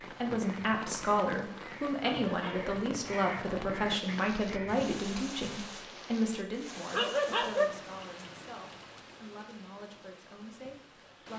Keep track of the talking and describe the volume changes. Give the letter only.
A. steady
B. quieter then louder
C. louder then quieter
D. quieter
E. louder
D.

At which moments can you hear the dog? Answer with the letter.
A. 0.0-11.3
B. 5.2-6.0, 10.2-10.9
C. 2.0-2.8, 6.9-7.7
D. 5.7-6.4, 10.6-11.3
C.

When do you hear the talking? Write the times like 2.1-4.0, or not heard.
0.0-11.3.